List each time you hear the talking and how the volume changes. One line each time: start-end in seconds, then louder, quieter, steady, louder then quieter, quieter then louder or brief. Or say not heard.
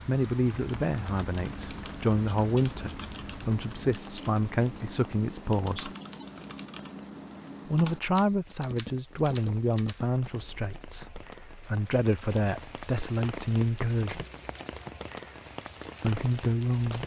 0.1-5.9 steady
7.7-14.2 quieter then louder
16.0-17.0 brief.